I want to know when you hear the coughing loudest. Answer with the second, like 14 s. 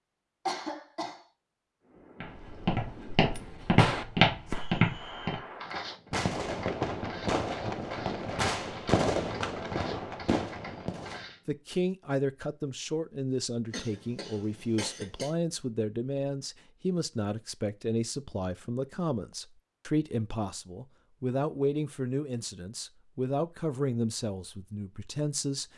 1 s.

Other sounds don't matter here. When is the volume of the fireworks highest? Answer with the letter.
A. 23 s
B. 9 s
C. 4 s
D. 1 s
B.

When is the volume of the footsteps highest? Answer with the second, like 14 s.
4 s.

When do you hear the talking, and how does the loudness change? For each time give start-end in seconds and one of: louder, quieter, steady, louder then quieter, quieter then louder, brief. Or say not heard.
11.4-25.7 steady.